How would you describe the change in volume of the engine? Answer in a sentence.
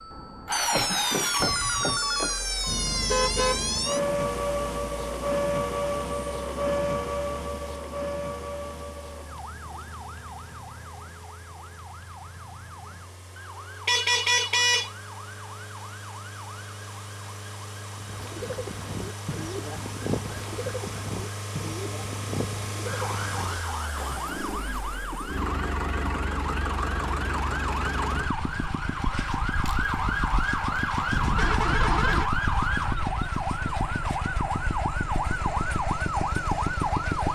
The volume of the engine goes down, then up.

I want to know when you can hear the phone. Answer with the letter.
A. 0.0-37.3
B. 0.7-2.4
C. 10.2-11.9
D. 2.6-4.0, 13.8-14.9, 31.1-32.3
B.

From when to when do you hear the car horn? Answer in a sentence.
The car horn can be heard from 2.6 to 4.0 s, from 13.8 to 14.9 s and from 31.1 to 32.3 s.